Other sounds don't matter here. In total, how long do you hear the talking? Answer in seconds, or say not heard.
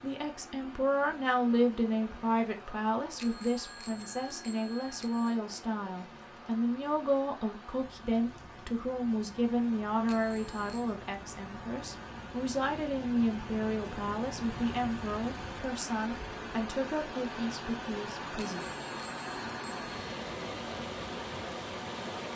19 s.